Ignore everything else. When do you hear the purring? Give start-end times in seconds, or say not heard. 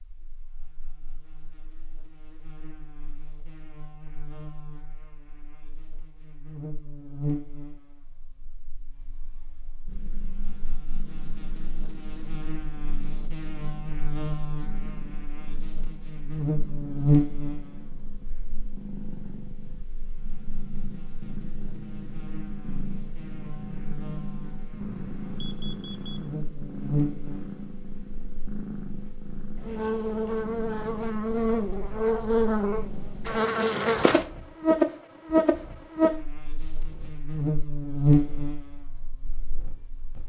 9.8-40.2.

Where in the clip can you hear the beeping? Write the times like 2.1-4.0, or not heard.
24.8-26.2.